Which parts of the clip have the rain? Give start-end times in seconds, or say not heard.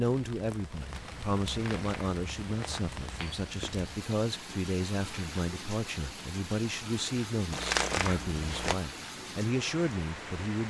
0.0-10.6.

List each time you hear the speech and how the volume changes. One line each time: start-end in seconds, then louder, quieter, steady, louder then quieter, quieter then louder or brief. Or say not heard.
0.0-10.6 steady.